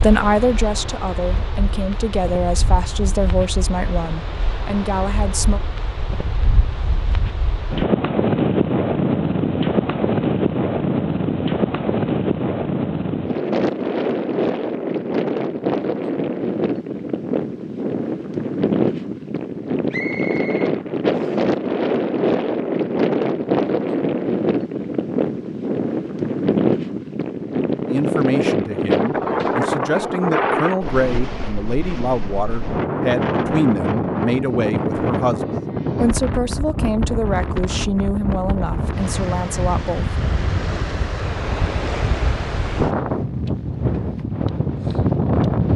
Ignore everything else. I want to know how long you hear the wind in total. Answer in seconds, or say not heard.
46 s.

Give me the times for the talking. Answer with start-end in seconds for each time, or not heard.
0.0-5.6, 27.9-35.4, 36.0-40.1.